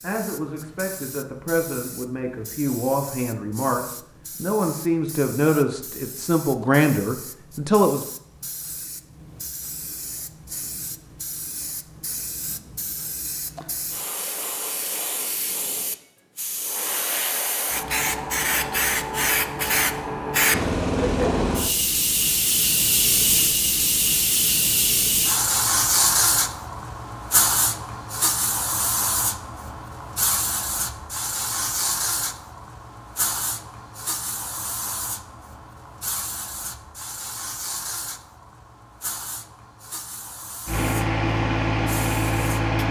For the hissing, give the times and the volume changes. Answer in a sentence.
You can hear the hissing from 0.0 to 42.6 s, getting louder then quieter.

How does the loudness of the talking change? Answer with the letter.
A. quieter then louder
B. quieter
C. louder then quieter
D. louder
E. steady
D.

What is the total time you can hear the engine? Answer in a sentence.
The engine can be heard for 2 seconds in total.